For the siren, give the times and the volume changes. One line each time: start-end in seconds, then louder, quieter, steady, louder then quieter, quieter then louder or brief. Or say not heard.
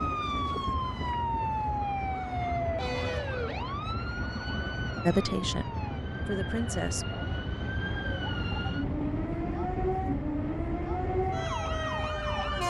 0.0-12.6 quieter then louder.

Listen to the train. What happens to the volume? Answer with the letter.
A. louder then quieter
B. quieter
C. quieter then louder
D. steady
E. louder
D.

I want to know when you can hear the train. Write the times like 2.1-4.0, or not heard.
0.0-12.6.